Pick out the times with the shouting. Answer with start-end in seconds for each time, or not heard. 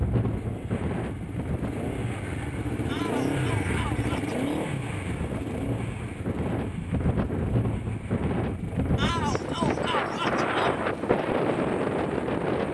2.9-4.7, 8.9-10.8.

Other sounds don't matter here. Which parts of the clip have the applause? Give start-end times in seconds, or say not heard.
not heard.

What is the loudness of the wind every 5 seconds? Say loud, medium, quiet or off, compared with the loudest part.
medium, loud, loud.